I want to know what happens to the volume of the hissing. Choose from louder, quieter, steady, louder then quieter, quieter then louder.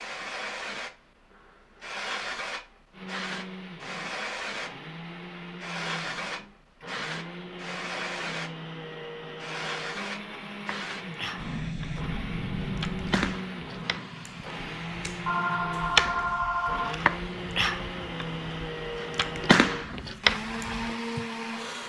quieter.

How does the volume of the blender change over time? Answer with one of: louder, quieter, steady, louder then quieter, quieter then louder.
louder.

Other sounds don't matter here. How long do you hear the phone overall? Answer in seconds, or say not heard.
2 s.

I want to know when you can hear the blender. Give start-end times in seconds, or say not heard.
2.9-21.8.